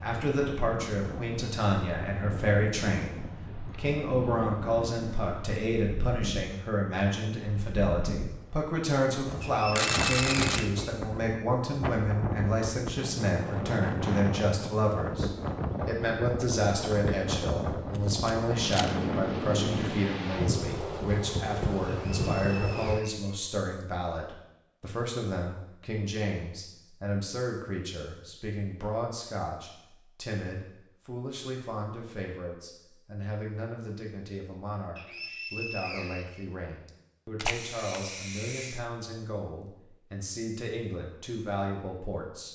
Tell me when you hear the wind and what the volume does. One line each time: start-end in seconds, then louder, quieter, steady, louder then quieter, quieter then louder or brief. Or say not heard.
0.0-23.0 louder.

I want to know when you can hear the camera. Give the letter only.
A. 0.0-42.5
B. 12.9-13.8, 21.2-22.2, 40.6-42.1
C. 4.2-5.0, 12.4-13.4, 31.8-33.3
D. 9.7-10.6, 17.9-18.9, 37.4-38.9
D.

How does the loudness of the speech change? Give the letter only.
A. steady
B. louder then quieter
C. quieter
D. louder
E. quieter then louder
C.